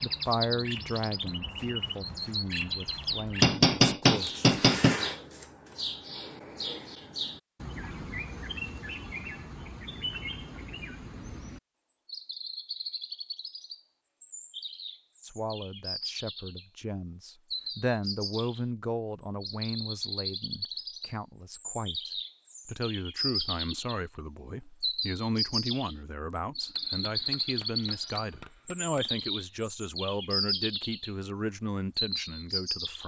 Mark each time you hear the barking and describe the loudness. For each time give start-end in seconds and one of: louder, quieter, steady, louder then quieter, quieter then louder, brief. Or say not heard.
not heard.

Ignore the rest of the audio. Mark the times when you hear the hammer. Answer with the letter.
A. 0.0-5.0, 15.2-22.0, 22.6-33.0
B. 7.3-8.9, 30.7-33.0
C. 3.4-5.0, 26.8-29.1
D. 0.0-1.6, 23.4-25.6
C.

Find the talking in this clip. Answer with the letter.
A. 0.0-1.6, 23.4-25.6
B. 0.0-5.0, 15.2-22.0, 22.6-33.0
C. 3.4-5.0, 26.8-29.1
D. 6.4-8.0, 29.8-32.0
B.